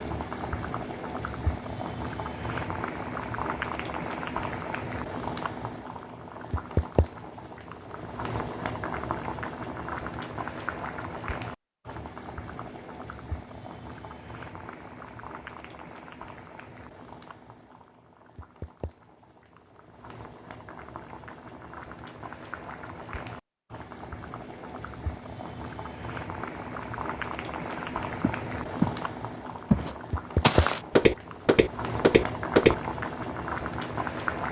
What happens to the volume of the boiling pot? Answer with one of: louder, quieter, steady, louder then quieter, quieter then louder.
quieter then louder.